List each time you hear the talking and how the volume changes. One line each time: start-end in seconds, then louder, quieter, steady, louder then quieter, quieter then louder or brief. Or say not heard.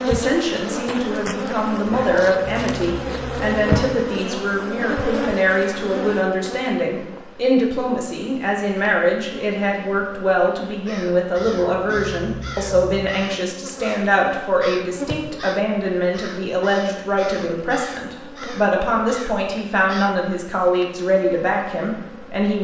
0.0-22.5 steady.